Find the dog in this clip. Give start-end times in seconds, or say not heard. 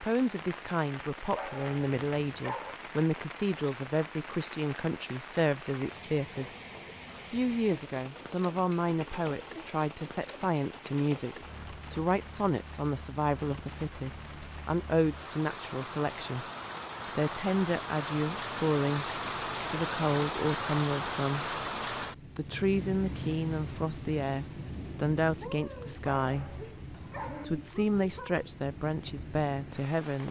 1.4-2.8, 26.1-27.4.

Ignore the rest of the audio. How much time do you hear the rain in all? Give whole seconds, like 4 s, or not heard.
30 s.